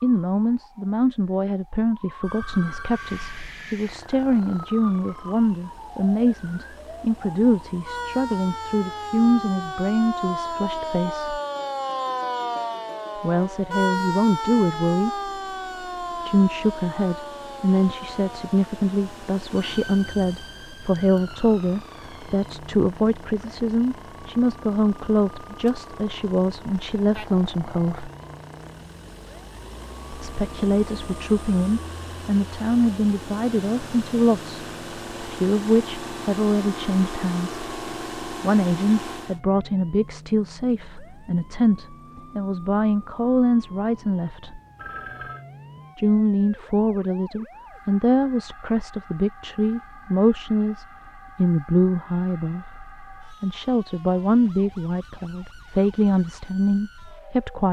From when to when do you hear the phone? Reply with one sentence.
The phone can be heard from 2.2 to 3.5 s and from 44.8 to 45.5 s.